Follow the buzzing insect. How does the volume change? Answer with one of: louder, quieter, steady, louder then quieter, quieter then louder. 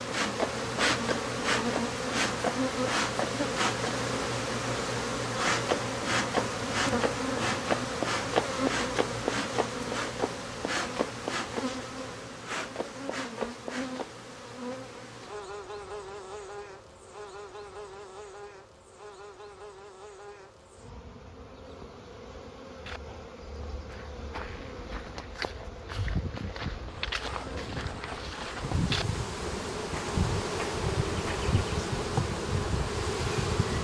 quieter then louder.